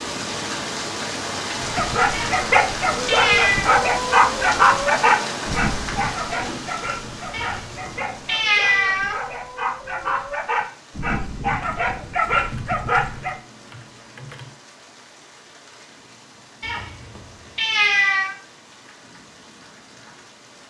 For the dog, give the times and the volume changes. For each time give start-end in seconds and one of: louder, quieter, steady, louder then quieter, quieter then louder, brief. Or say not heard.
1.6-13.3 quieter then louder.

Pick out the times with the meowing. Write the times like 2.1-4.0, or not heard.
2.1-3.7, 7.3-9.2, 16.6-18.4.